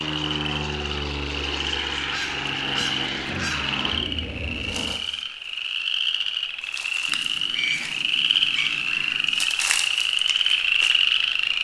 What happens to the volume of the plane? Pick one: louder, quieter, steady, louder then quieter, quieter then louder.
steady.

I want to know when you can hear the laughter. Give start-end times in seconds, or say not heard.
not heard.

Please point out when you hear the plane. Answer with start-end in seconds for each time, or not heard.
0.0-5.0.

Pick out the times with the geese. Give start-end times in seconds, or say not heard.
2.1-3.8, 7.0-9.5.